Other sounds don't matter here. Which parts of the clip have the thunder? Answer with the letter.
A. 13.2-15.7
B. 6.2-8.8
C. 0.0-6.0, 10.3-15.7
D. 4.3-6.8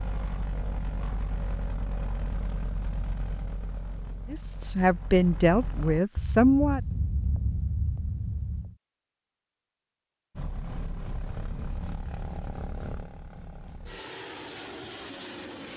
B.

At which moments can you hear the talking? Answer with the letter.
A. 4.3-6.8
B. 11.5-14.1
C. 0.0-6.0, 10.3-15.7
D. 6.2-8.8
A.